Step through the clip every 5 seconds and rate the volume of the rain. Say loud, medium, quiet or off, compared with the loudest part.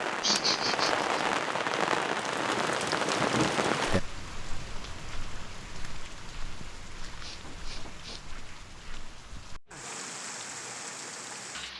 loud, quiet, medium.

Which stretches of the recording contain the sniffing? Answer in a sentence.
The sniffing can be heard from 0.2 to 1.2 s and from 7.0 to 8.3 s.